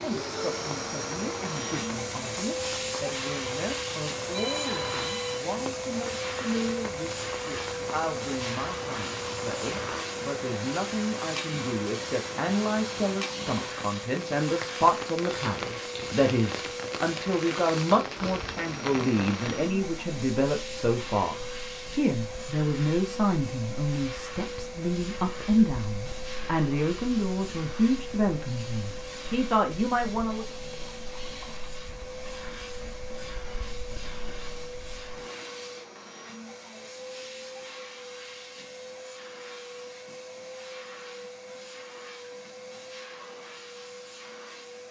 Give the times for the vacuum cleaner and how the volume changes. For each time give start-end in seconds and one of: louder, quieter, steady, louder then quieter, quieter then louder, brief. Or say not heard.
0.0-44.8 quieter.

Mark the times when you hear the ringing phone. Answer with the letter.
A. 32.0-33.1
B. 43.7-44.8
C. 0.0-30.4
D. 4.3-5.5
D.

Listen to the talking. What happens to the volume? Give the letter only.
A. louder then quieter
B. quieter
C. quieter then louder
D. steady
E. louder
E.